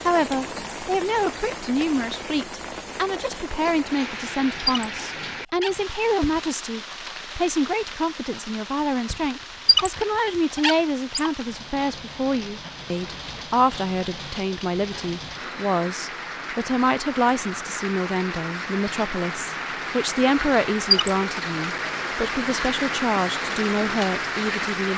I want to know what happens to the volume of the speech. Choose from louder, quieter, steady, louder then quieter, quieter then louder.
steady.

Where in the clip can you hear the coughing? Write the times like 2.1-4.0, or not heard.
not heard.